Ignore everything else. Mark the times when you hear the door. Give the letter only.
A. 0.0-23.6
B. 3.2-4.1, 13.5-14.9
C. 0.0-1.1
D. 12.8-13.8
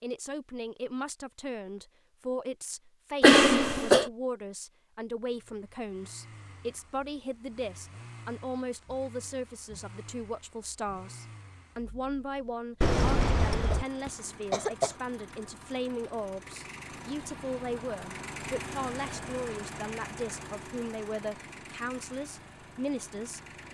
D.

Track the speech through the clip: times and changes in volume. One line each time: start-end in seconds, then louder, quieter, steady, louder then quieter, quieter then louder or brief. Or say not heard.
0.0-23.6 steady.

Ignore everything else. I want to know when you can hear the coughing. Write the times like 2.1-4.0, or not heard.
3.2-4.1, 13.5-14.9.